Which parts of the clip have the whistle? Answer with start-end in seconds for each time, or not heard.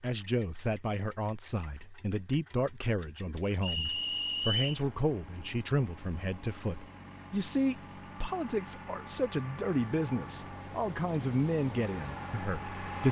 3.6-4.8.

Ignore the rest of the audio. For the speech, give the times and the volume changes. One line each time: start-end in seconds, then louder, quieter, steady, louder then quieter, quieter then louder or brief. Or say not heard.
0.0-13.0 steady.